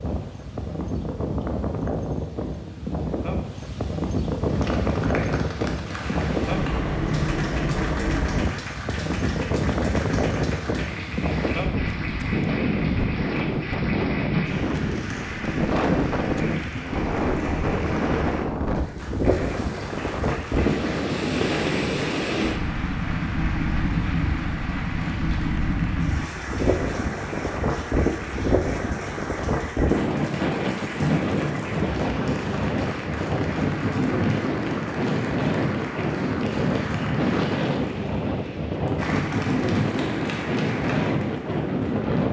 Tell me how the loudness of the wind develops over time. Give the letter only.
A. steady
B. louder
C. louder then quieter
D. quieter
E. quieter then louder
A.